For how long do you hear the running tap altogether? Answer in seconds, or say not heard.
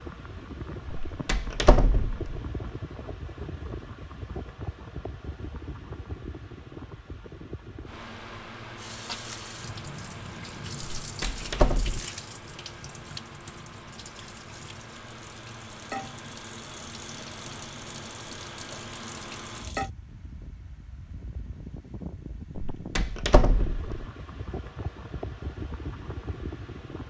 11 s.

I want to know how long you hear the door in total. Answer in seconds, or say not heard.
4 s.